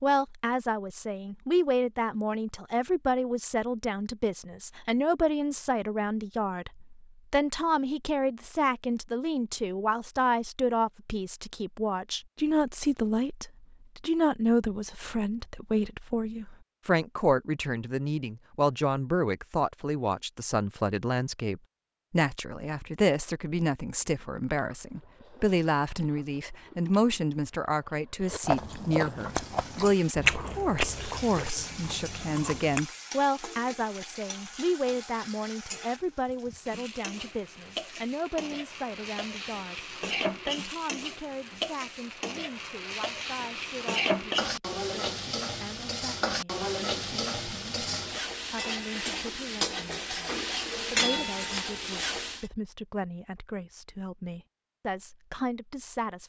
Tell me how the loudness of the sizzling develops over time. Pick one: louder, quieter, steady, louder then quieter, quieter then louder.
louder.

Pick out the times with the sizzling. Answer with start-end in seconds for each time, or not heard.
29.2-52.5.